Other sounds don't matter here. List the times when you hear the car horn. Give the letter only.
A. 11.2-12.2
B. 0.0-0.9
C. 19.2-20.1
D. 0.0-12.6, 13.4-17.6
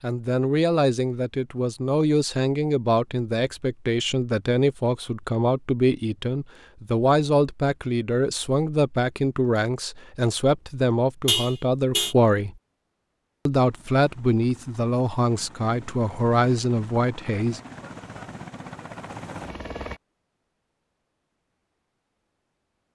A.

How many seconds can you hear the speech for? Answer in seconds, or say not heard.
17 s.